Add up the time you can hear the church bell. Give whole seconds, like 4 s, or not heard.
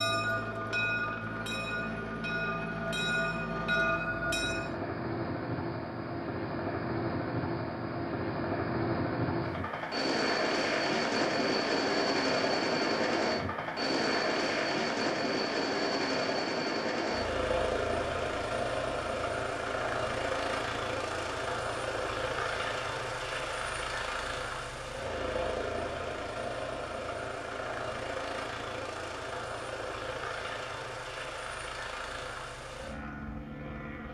5 s.